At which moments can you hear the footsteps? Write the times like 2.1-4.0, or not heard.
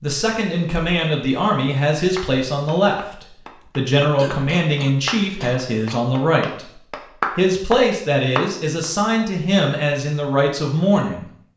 not heard.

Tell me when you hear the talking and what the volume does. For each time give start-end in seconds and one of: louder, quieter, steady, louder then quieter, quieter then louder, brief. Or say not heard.
0.0-11.3 steady.